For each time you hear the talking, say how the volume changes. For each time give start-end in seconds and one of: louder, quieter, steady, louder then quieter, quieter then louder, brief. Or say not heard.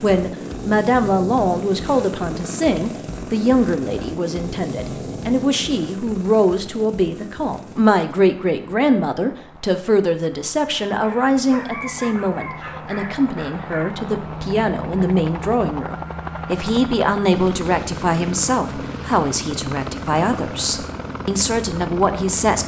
0.0-22.6 steady.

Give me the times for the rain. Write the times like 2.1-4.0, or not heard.
not heard.